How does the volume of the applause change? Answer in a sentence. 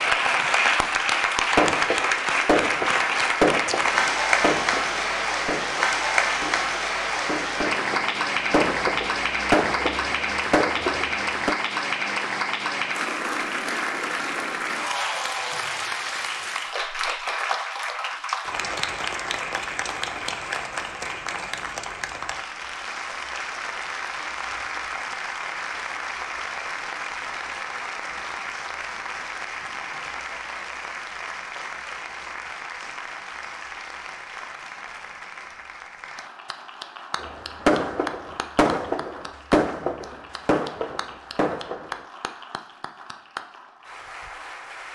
The loudness of the applause goes down.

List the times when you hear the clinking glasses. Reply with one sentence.
The clinking glasses can't be heard in this clip.